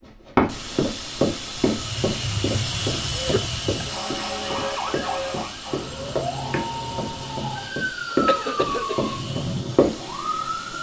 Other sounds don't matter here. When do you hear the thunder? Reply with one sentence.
The thunder can't be heard in this clip.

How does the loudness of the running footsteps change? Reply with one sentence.
The loudness of the running footsteps goes down, then up.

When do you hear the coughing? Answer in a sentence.
You can hear the coughing from 3.1 to 3.9 s and from 8.2 to 9.2 s.